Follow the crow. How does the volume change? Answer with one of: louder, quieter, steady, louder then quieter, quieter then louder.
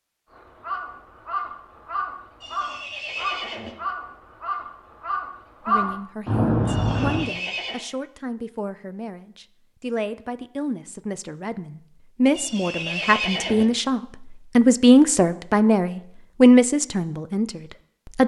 louder.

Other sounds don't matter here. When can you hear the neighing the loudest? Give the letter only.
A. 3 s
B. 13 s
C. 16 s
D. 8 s
B.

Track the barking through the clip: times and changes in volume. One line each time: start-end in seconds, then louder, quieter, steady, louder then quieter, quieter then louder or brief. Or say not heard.
not heard.